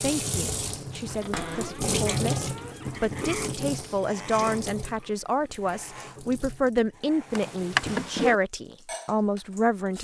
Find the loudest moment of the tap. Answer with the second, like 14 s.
2 s.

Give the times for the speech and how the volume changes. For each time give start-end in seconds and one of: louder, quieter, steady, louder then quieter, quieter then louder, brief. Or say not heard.
0.0-9.9 louder.